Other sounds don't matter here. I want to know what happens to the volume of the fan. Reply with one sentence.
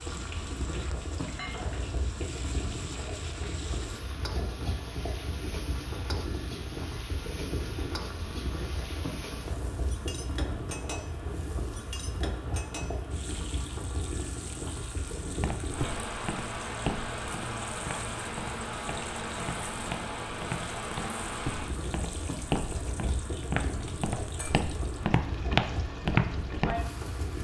The loudness of the fan stays about the same.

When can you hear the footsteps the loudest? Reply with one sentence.
The loudest moment of the footsteps is at 26 seconds.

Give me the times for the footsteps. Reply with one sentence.
You can hear the footsteps from 15.2 to 26.8 s.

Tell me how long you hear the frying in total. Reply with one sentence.
The frying can be heard for 27 seconds in total.